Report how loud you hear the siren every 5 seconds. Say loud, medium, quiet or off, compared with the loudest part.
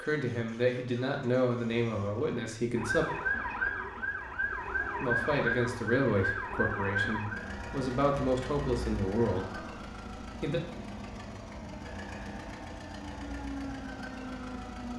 loud, loud, medium.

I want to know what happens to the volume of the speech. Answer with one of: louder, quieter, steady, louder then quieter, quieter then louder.
steady.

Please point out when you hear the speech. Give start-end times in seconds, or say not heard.
0.0-3.0, 5.0-10.6.